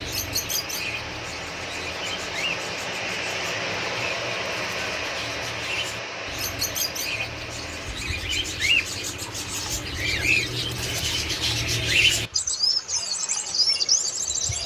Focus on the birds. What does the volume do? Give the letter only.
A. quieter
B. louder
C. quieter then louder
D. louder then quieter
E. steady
B.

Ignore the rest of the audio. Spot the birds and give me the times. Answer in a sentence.
You can hear the birds from 0.0 to 14.6 s.